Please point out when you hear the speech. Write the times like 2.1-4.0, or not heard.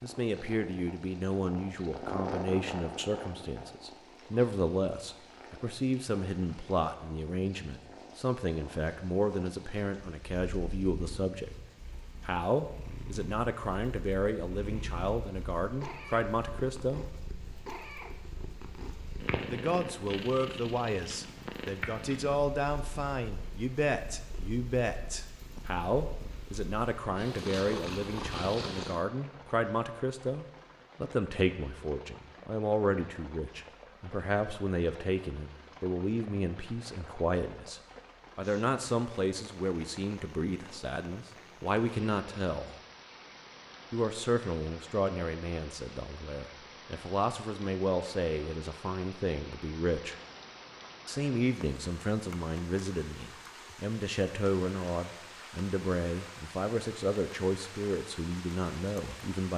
0.0-11.5, 12.2-17.1, 19.5-42.8, 43.9-50.1, 51.0-59.5.